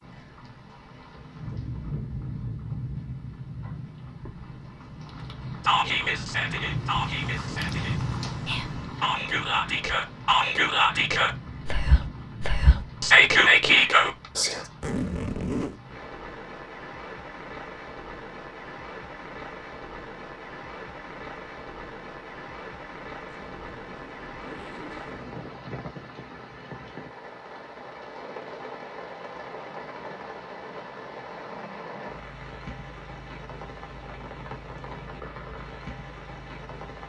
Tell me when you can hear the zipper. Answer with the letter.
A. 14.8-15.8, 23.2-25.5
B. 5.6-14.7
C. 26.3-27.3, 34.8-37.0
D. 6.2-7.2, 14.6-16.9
A.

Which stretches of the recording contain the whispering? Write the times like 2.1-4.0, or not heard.
5.6-14.7.